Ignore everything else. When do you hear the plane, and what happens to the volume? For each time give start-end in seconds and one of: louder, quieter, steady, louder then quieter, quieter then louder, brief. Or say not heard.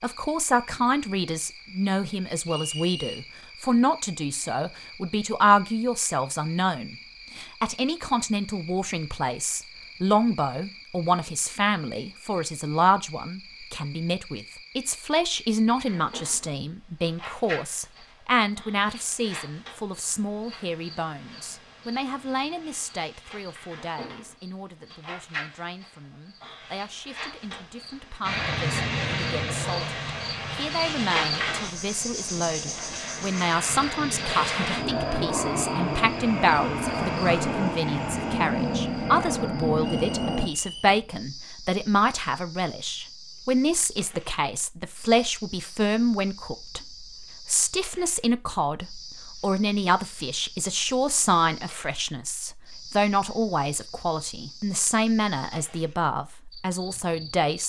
28.2-40.5 quieter then louder.